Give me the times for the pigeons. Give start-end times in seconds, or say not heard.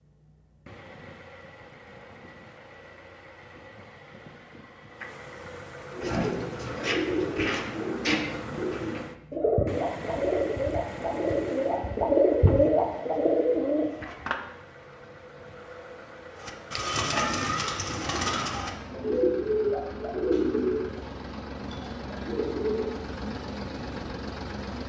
5.9-14.3, 16.4-22.9.